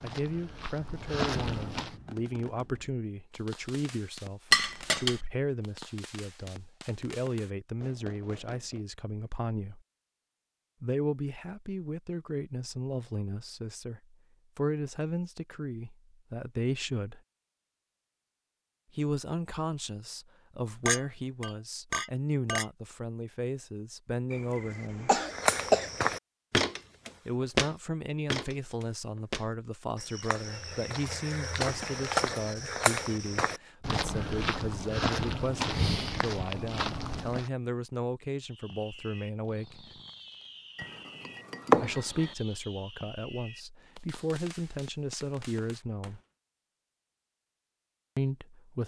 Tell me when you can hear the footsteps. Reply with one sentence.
The footsteps can be heard from 0.0 to 1.9 s and from 25.3 to 37.5 s.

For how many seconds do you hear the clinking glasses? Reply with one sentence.
The clinking glasses can be heard for 4 seconds in total.